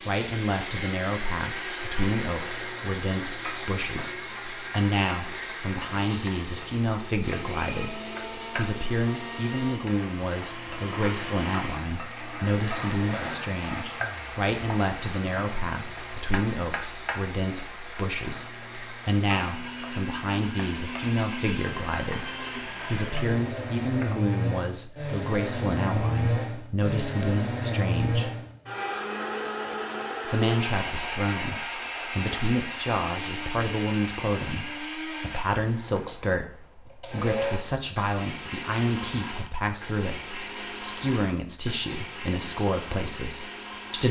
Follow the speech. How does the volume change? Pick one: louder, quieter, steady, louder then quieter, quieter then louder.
steady.